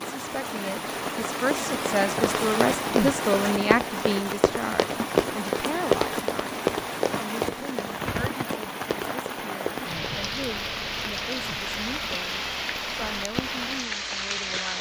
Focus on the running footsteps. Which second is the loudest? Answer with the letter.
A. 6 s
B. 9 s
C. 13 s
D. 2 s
A.